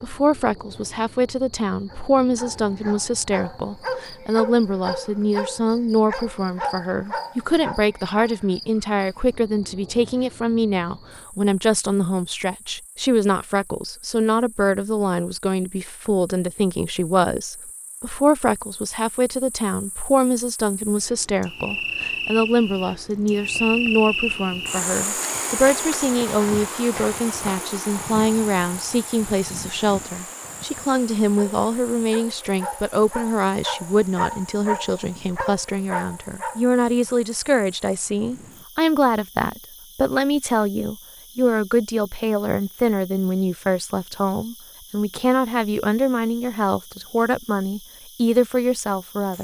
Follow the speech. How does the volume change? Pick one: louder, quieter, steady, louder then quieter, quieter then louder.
steady.